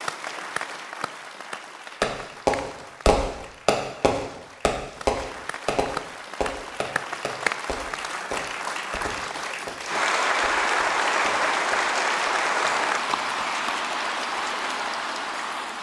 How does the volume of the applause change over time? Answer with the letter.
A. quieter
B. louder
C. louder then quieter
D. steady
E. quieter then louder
B.